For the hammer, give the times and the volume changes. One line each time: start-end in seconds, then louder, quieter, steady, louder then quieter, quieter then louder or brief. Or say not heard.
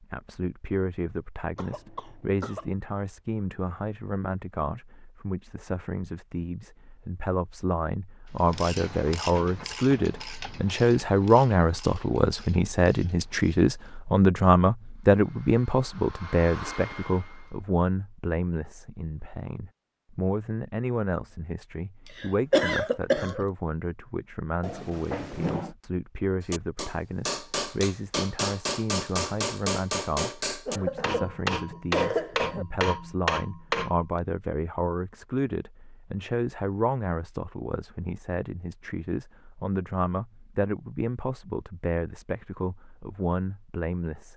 26.5-34.0 steady.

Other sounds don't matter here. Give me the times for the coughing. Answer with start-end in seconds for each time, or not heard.
1.6-2.7, 22.1-23.4, 30.6-32.6.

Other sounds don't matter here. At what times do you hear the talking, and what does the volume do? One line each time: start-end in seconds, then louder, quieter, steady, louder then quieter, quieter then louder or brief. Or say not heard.
0.0-44.3 louder then quieter.